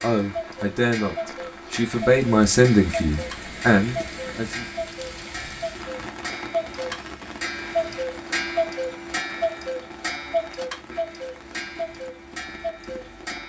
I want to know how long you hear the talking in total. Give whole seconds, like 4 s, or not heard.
5 s.